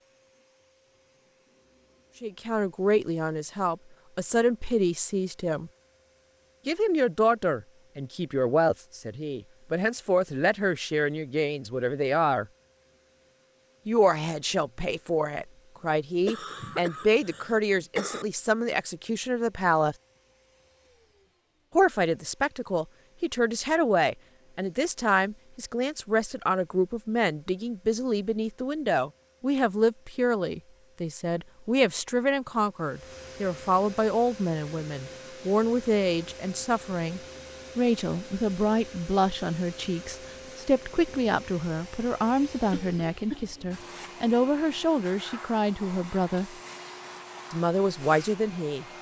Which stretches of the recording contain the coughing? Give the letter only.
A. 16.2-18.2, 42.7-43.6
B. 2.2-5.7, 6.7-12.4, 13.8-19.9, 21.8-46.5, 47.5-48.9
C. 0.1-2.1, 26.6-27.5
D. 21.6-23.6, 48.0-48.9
A.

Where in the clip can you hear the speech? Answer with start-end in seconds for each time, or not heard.
2.2-5.7, 6.7-12.4, 13.8-19.9, 21.8-46.5, 47.5-48.9.